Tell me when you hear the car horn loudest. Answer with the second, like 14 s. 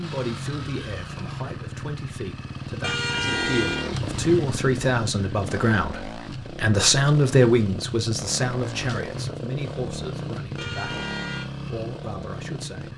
3 s.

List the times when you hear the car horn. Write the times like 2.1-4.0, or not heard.
2.8-4.0, 10.6-11.5.